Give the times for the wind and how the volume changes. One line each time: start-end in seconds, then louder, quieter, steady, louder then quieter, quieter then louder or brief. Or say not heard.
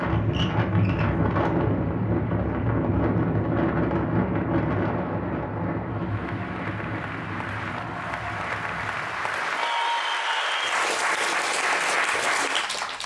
0.0-9.4 quieter.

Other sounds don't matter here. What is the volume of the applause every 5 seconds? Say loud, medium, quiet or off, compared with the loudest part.
quiet, medium, loud.